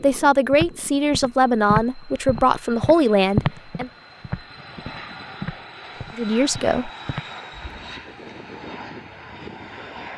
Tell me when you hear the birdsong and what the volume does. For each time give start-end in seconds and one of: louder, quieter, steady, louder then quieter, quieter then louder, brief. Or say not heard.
not heard.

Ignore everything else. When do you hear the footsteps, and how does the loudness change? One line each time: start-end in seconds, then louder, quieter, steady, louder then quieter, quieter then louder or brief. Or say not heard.
0.5-7.9 quieter.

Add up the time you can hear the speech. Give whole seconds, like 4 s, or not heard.
5 s.